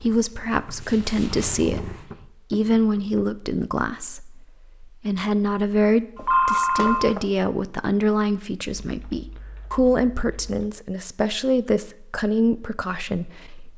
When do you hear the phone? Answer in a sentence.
You can hear the phone from 6.2 to 7.2 s.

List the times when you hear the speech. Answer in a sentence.
You can hear the speech from 0.0 to 13.7 s.